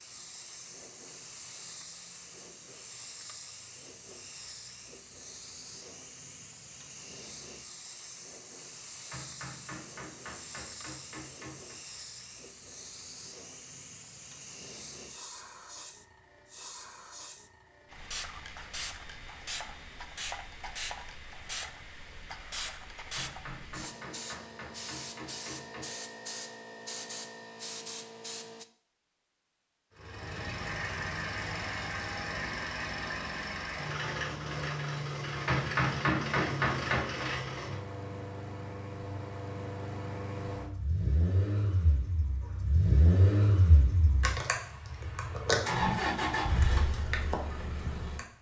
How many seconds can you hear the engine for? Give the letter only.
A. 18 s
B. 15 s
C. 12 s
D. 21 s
A.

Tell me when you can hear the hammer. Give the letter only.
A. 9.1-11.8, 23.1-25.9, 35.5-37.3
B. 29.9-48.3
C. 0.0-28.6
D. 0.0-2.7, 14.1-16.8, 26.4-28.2
A.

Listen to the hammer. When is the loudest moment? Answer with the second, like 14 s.
36 s.